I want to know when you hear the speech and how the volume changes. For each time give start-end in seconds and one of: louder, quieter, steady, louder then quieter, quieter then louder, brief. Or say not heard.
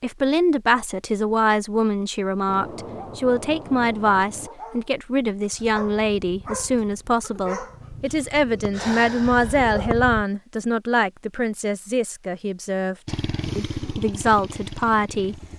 0.0-15.4 steady.